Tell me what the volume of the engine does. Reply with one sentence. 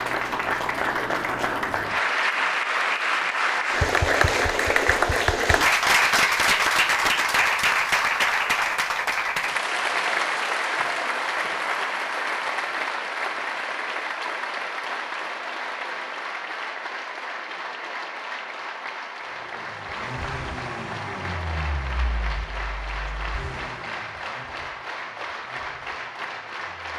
The volume of the engine goes down.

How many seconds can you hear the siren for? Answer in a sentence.
You can't hear the siren here.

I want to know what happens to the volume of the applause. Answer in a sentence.
The volume of the applause goes down.